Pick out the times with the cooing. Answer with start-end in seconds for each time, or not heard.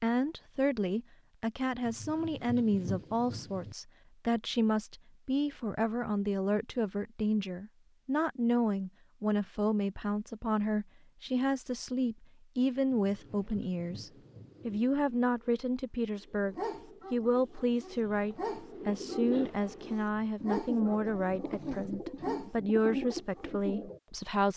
13.2-24.0.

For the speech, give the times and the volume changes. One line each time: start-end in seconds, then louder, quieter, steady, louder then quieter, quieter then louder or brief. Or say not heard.
0.0-24.5 steady.